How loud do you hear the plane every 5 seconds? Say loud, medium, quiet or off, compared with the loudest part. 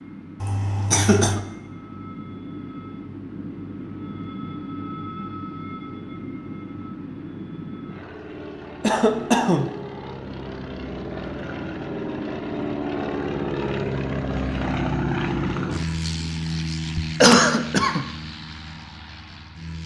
medium, medium, loud, loud.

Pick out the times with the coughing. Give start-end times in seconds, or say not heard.
0.4-1.4, 8.8-9.7, 17.2-18.1.